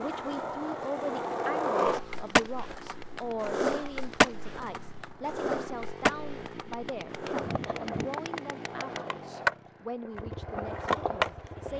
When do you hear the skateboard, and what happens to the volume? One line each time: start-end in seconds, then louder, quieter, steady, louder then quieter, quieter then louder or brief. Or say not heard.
0.0-11.7 quieter then louder.